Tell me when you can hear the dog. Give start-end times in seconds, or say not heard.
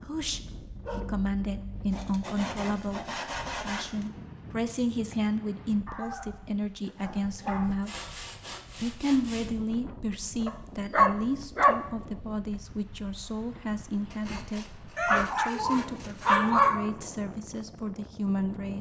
0.5-2.0, 5.8-7.8, 10.4-11.8, 14.9-16.9.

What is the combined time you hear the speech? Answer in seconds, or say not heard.
17 s.